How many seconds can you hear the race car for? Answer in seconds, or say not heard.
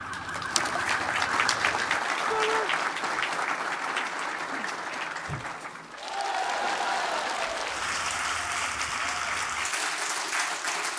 not heard.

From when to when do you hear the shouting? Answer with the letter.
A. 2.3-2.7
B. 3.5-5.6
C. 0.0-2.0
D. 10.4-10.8
A.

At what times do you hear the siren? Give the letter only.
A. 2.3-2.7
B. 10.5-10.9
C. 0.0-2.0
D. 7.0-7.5
C.